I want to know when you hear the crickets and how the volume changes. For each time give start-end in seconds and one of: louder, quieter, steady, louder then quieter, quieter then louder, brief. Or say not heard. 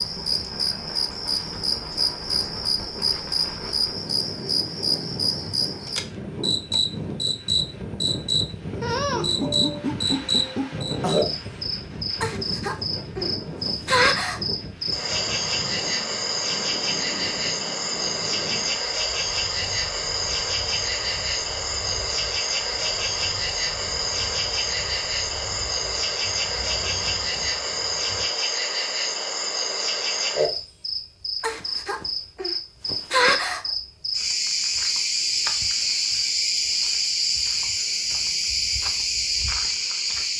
0.0-40.3 steady.